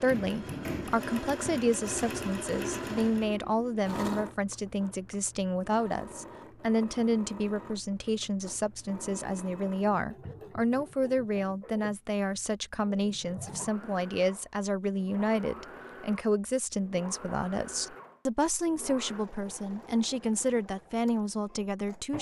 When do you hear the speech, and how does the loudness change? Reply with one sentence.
You can hear the speech from 0.0 to 22.1 s, at a steady volume.